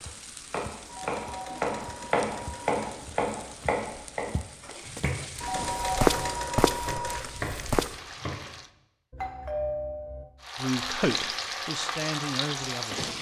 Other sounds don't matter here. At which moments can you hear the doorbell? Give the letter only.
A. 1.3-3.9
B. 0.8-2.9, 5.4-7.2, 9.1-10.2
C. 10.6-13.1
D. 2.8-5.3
B.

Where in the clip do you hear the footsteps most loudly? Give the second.
6 s.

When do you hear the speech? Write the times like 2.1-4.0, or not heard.
10.6-13.1.